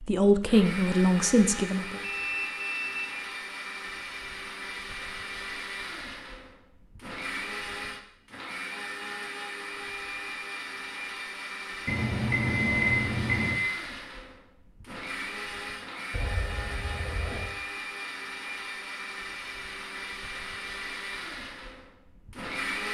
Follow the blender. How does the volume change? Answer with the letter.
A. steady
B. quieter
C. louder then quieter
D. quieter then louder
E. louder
A.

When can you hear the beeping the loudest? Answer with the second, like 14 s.
13 s.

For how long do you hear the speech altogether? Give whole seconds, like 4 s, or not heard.
2 s.